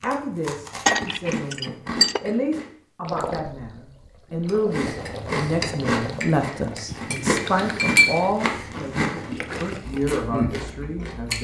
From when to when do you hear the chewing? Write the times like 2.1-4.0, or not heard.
0.0-2.7, 4.5-11.4.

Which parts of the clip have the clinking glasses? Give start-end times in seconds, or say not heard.
0.8-2.2, 6.9-8.3.